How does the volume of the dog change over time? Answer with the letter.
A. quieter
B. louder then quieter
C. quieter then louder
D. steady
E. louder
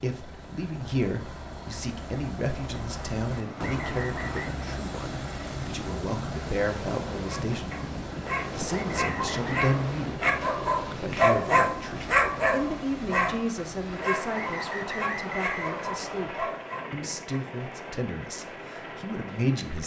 B.